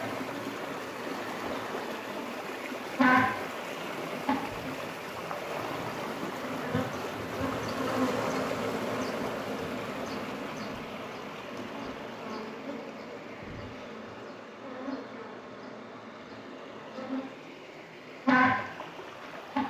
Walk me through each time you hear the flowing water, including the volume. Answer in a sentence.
The flowing water can be heard from 0.0 to 19.6 s, getting quieter.